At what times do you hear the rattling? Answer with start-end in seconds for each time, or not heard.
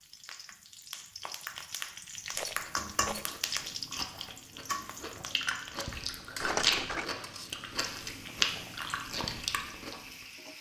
2.4-3.3, 6.4-7.1.